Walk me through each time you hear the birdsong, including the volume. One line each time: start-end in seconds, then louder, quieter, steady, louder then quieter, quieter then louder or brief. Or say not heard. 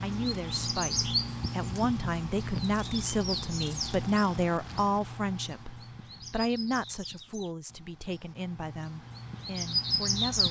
0.0-10.4 quieter then louder.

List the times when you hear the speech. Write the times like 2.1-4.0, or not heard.
0.0-10.4.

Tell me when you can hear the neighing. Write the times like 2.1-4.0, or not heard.
not heard.